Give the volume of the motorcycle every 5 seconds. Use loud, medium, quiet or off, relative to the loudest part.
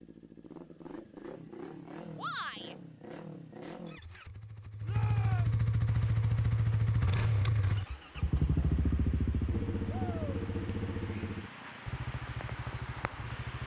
quiet, loud, medium.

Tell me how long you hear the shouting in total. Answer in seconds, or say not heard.
2 s.